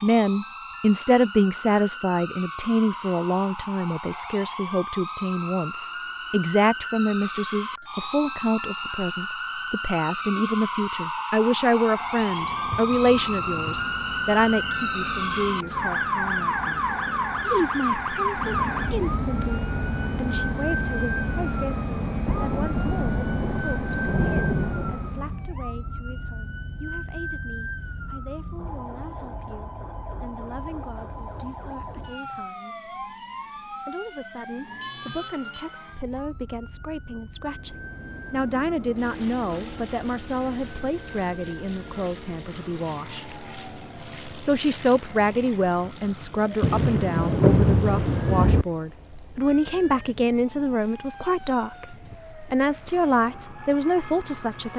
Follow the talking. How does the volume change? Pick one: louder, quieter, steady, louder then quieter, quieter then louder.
quieter then louder.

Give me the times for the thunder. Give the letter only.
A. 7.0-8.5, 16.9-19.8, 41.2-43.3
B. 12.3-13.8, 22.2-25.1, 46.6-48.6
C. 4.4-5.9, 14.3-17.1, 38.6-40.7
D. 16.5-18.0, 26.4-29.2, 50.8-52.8
B.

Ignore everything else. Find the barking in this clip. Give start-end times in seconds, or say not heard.
not heard.